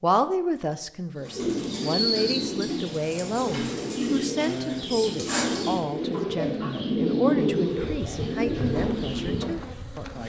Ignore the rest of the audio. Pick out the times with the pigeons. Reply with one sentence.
The pigeons can be heard from 1.1 to 9.6 s.